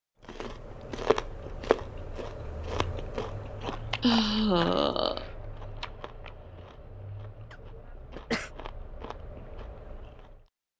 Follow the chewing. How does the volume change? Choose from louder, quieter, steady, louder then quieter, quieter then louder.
quieter.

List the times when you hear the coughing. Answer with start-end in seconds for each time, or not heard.
7.5-8.5.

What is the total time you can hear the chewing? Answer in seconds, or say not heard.
10 s.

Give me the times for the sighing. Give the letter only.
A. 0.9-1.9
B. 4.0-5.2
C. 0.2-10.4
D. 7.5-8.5
B.